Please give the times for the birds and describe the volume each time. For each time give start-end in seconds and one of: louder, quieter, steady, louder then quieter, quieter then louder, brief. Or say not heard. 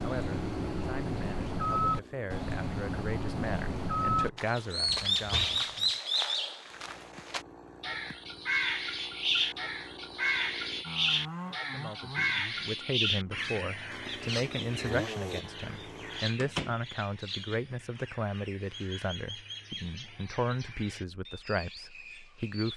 0.0-22.7 quieter.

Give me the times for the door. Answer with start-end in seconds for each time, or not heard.
4.8-5.8, 16.4-16.8.